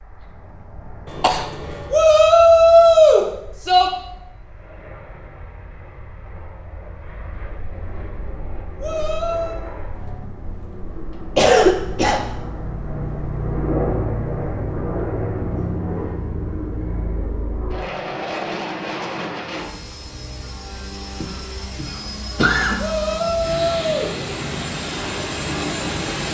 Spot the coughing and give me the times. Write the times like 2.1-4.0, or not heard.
1.1-1.9, 11.3-12.2, 21.2-22.8.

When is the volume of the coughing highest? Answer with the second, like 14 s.
12 s.